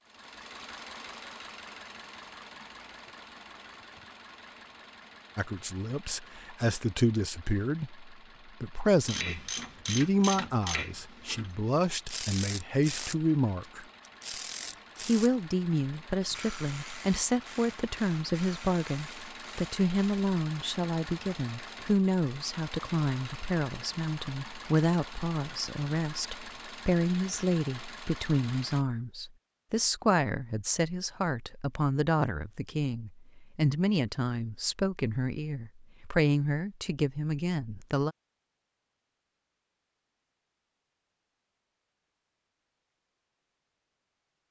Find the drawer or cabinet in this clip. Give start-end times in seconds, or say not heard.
not heard.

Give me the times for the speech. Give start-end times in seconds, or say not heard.
5.3-13.8, 15.0-38.1.